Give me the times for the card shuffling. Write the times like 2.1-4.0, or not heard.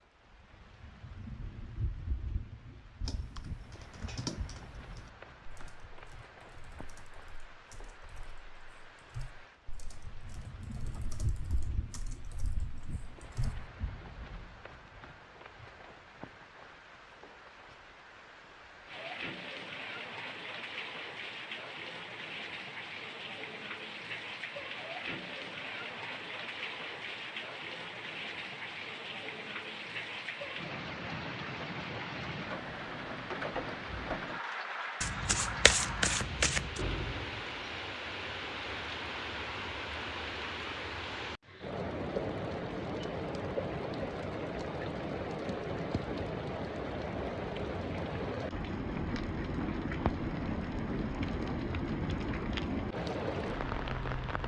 35.0-36.8.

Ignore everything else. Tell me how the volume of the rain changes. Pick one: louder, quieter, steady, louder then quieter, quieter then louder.
louder.